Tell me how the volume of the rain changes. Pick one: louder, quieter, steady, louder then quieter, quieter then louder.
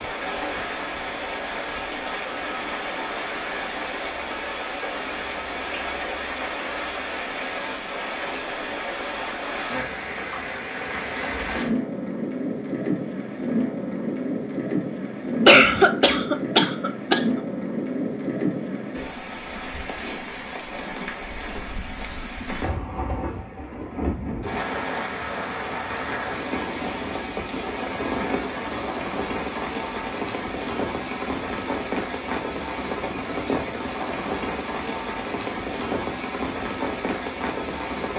steady.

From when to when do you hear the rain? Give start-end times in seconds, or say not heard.
0.0-38.1.